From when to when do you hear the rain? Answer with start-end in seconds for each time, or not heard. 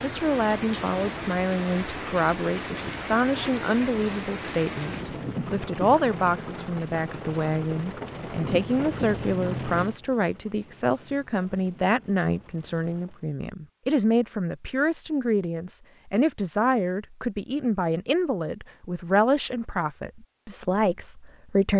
0.0-13.3.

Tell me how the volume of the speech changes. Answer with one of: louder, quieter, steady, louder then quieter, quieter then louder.
steady.